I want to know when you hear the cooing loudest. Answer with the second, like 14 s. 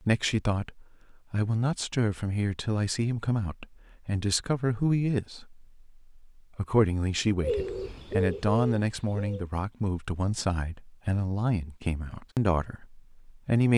8 s.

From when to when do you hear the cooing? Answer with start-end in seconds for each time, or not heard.
7.4-9.4.